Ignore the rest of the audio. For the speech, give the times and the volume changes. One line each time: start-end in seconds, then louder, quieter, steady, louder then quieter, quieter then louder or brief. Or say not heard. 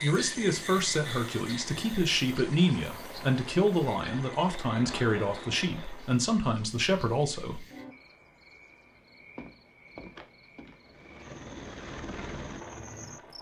0.0-7.7 steady.